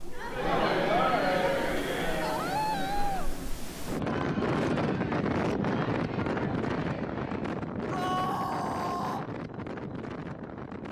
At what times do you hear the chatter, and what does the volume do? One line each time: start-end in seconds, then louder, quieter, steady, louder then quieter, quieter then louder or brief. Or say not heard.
0.0-7.5 quieter.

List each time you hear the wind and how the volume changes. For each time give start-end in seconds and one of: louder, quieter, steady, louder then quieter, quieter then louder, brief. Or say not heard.
0.0-10.8 louder then quieter.